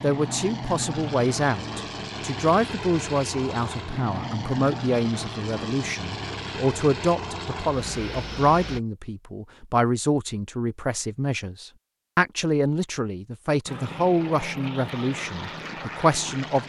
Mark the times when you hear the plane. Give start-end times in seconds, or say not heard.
0.0-8.8, 13.7-16.6.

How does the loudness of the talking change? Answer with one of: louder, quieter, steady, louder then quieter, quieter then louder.
steady.